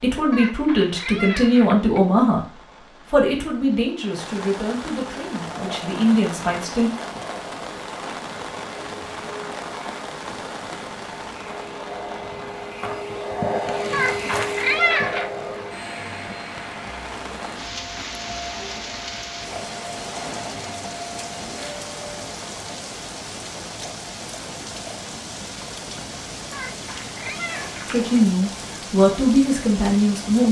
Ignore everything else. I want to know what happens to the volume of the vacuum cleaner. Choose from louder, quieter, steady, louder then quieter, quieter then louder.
louder then quieter.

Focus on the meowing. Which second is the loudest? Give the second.
15 s.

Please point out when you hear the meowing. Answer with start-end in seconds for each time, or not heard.
0.3-2.0, 13.9-15.3, 26.5-28.1.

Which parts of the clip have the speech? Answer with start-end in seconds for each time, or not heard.
0.0-6.9, 27.9-30.4.